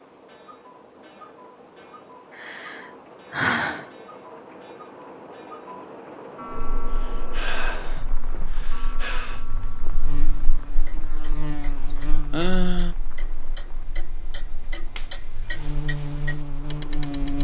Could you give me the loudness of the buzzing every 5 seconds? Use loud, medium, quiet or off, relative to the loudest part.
off, quiet, medium, loud.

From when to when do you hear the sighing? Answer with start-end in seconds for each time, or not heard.
2.3-3.9, 6.9-9.4, 11.8-12.9.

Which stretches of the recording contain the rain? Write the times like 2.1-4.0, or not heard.
0.0-17.4.